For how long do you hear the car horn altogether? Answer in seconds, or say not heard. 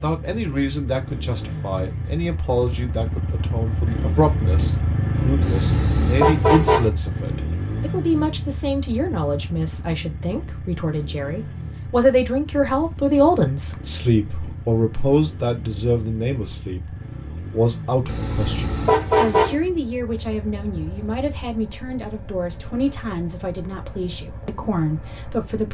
3 s.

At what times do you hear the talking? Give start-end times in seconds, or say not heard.
0.0-25.6.